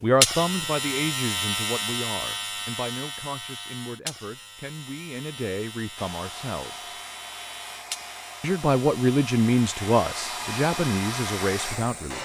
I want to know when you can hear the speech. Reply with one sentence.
You can hear the speech from 0.0 to 6.9 s and from 8.4 to 12.1 s.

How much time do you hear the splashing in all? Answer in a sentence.
The splashing can't be heard in this clip.